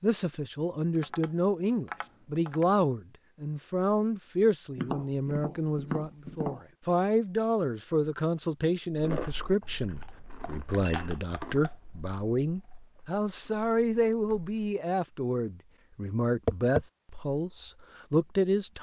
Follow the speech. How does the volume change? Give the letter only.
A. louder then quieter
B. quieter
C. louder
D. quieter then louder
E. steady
E.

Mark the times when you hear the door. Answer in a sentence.
You can't hear the door here.